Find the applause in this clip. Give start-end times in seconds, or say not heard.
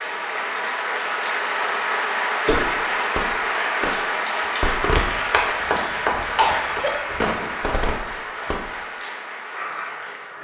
0.0-10.4.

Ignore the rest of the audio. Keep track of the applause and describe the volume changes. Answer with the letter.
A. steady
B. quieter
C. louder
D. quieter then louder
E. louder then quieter
B.